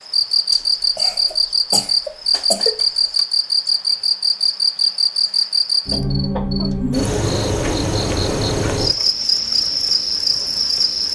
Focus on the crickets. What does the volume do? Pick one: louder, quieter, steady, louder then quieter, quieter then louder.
steady.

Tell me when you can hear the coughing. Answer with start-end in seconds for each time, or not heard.
0.5-3.2, 5.9-6.7.